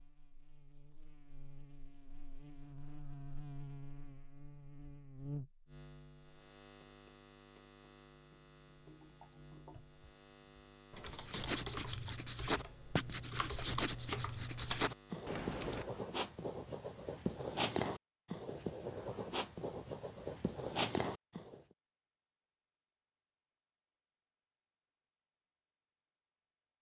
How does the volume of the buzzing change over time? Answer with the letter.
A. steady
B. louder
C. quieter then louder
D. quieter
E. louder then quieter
E.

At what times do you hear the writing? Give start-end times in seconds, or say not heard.
11.1-21.6.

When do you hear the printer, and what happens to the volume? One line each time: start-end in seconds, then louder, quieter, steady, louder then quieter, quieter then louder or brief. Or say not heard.
not heard.